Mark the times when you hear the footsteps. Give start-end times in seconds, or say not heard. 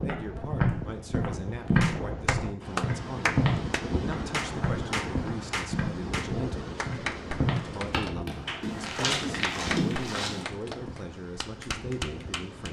0.0-10.4.